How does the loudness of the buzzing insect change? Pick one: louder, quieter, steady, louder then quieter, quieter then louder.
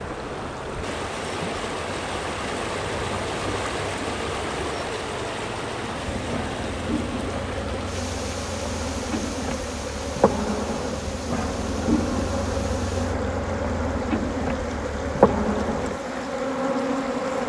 louder.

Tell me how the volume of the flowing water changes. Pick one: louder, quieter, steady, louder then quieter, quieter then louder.
quieter.